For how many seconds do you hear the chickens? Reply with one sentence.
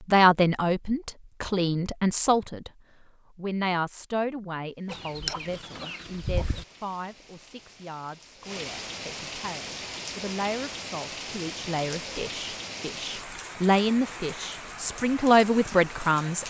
The chickens can be heard for 2 seconds in total.